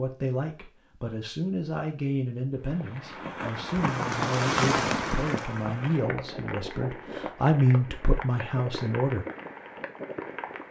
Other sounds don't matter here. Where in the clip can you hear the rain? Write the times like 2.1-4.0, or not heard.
2.6-10.6.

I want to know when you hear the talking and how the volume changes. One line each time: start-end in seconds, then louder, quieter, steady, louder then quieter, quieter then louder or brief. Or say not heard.
0.0-9.2 louder.